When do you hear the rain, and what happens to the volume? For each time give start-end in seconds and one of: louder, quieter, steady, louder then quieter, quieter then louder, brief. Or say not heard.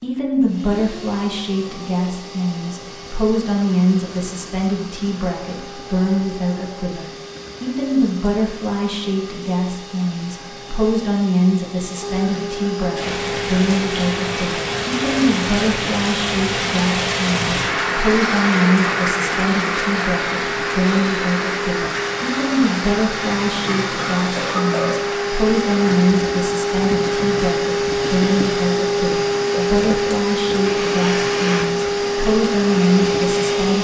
12.9-33.7 quieter.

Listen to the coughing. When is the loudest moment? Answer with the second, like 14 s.
25 s.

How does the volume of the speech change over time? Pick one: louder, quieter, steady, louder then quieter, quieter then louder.
steady.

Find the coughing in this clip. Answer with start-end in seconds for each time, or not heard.
23.4-25.1.